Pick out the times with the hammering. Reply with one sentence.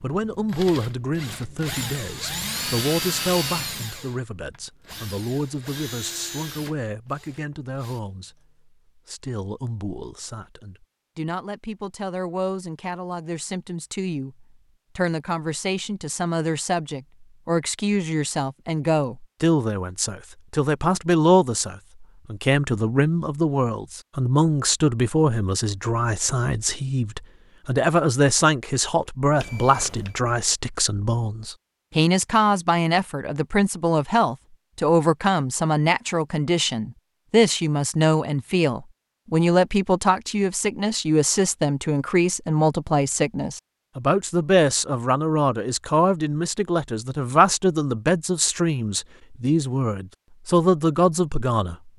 The hammering can't be heard in this clip.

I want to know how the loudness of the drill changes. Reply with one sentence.
The loudness of the drill goes up, then down.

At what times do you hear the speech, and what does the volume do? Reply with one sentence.
The speech can be heard from 0.0 to 51.9 s, getting louder.